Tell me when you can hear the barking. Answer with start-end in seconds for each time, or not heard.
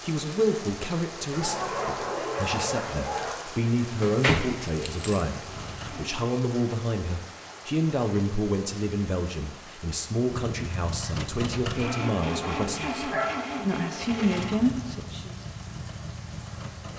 1.3-3.4, 11.8-13.4.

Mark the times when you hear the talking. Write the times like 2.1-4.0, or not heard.
0.0-15.3.